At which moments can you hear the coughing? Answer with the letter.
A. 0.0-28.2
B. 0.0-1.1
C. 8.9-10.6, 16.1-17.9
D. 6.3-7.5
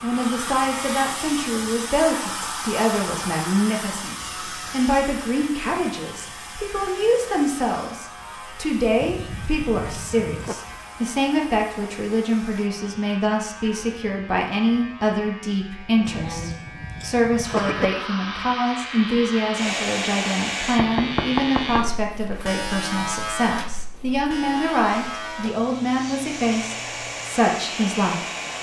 C.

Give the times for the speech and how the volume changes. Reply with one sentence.
You can hear the speech from 0.0 to 28.2 s, at a steady volume.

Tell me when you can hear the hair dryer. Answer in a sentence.
You can hear the hair dryer from 0.0 to 12.7 s, from 17.4 to 20.8 s and from 24.9 to 28.5 s.